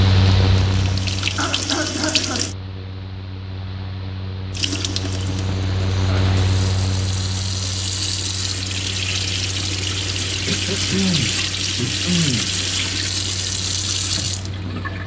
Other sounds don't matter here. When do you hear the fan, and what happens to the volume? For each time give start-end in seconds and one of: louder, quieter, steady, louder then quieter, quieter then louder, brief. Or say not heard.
0.0-15.0 quieter.